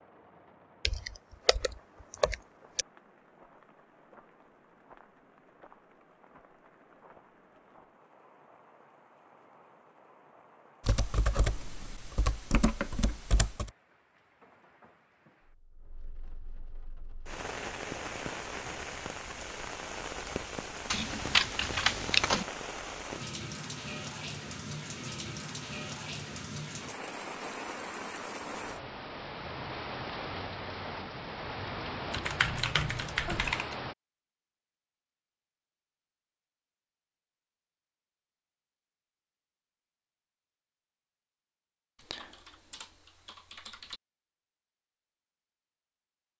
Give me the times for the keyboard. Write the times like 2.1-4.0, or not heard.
0.8-2.9, 10.8-13.7, 20.9-22.4, 32.1-33.8, 42.0-44.0.